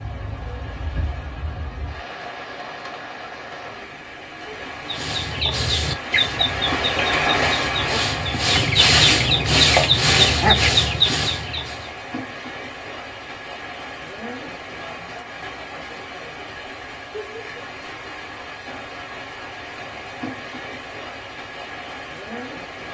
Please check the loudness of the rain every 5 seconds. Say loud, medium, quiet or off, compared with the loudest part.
medium, loud, medium, medium, medium.